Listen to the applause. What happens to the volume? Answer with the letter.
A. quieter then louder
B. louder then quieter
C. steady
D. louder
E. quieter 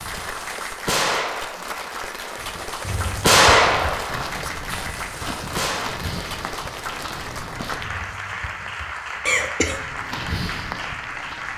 C.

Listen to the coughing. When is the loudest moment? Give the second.
9 s.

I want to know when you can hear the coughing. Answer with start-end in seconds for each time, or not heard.
2.8-3.9, 7.8-9.8.